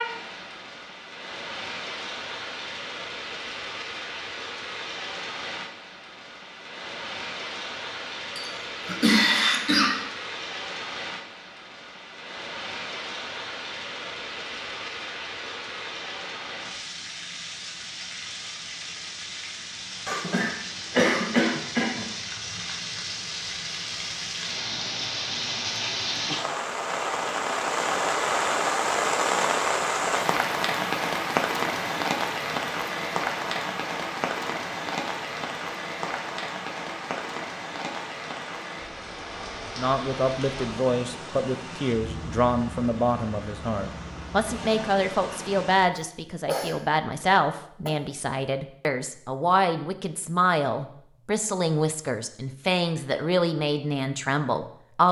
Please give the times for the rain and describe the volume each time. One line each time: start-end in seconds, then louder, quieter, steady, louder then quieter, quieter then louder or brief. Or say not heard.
0.0-45.9 louder then quieter.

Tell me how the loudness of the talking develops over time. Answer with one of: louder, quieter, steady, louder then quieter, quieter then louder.
steady.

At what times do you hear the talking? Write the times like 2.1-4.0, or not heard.
39.8-55.0.